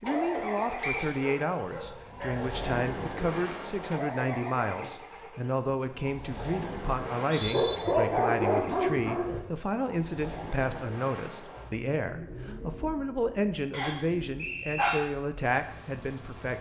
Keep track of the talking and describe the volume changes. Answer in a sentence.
The volume of the talking stays about the same.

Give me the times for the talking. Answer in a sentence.
The talking can be heard from 0.0 to 16.5 s.